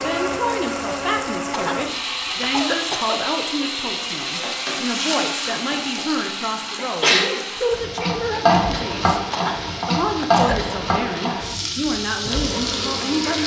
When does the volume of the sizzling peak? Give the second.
9 s.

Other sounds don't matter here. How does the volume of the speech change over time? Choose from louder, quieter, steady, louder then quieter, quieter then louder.
steady.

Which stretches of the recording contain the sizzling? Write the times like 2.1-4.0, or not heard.
0.0-13.4.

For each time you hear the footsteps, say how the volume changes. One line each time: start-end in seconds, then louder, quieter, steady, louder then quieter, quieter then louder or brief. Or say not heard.
not heard.